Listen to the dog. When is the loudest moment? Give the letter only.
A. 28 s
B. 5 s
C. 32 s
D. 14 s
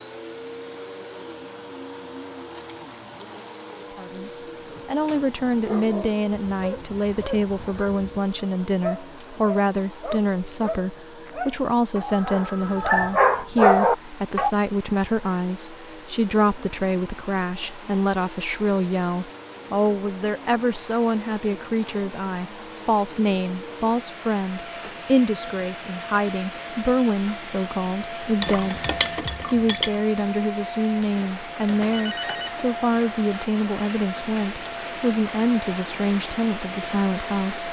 D.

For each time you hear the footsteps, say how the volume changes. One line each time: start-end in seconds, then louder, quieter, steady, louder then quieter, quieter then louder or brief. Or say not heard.
not heard.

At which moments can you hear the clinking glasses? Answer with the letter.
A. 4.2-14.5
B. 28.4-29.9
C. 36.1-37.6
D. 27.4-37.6
B.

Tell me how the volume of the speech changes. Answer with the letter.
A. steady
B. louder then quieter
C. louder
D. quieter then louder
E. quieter
A.